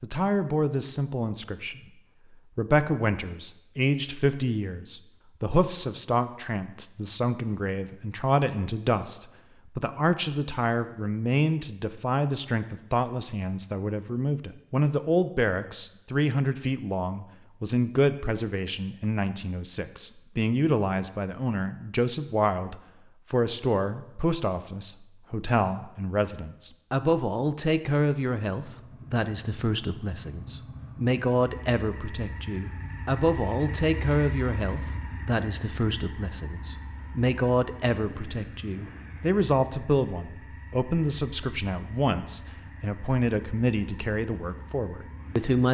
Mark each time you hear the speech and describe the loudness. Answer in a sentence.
The speech can be heard from 0.0 to 45.7 s, at a steady volume.